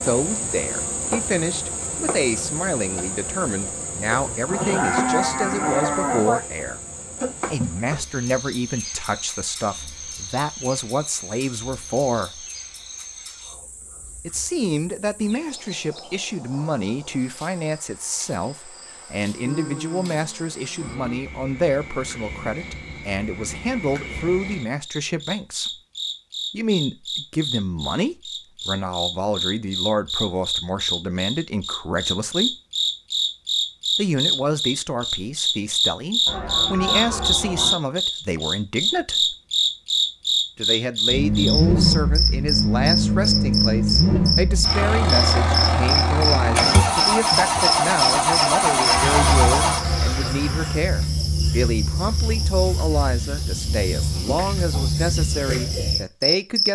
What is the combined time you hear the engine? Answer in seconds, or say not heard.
9 s.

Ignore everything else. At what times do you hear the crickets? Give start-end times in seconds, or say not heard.
0.0-56.6.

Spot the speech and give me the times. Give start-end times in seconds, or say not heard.
0.0-6.8, 7.5-12.4, 14.2-25.7, 26.5-32.5, 34.0-39.4, 40.5-56.6.